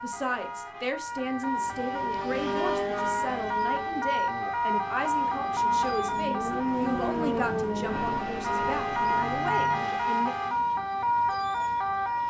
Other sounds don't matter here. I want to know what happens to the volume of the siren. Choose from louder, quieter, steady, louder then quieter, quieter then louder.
louder.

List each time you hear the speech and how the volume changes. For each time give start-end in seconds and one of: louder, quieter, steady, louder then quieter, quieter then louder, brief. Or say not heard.
0.0-10.3 steady.